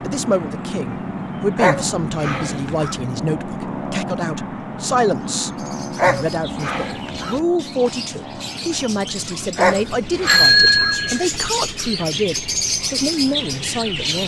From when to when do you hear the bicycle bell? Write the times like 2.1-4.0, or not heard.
10.2-11.2.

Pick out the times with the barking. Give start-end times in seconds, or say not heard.
1.6-3.0, 6.0-7.4, 9.6-11.0.